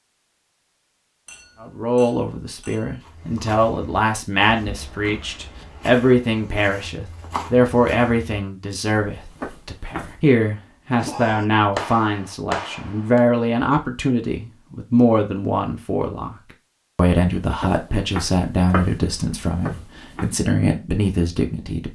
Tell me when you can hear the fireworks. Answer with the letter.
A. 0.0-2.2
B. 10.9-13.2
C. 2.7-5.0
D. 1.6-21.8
B.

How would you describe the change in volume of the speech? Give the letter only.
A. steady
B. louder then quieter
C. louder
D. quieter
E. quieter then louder
A.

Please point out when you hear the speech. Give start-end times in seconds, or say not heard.
1.6-21.8.